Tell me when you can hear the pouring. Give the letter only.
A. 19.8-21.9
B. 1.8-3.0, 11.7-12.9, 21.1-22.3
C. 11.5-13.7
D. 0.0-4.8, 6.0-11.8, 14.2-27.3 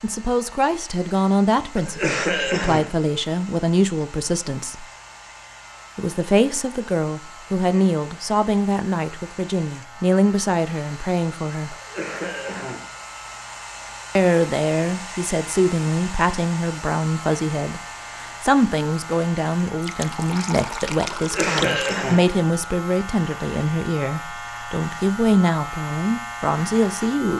A.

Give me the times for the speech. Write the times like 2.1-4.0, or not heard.
0.0-4.8, 6.0-11.8, 14.2-27.3.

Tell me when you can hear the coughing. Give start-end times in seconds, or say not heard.
1.8-3.0, 11.7-12.9, 21.1-22.3.